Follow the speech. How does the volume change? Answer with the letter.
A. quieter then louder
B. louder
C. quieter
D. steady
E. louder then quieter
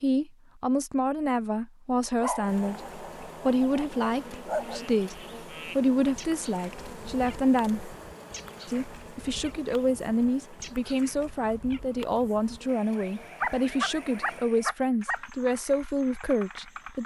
D.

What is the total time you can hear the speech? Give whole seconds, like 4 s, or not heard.
16 s.